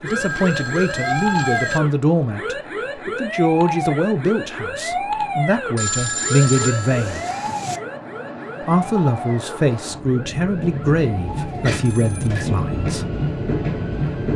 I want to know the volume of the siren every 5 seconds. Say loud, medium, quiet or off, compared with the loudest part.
loud, loud, quiet.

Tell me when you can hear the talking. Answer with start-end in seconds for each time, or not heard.
0.0-7.2, 8.7-13.1.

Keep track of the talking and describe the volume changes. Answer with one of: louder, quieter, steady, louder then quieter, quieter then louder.
steady.